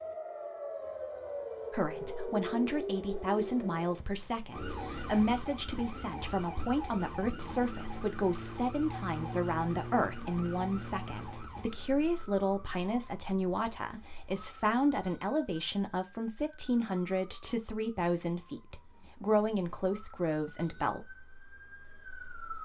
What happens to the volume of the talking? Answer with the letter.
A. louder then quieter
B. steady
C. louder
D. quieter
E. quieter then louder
B.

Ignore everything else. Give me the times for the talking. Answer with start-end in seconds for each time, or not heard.
1.7-21.1.